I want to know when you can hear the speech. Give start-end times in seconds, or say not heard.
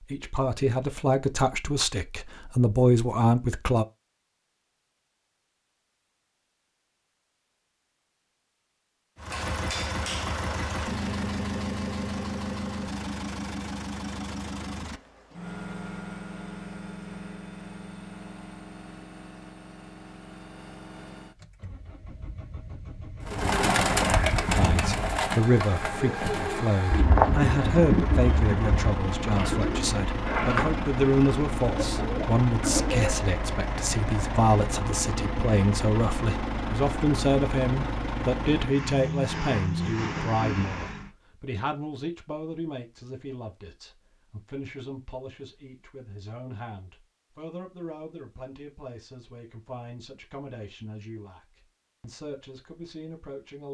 0.0-3.9, 24.5-53.6.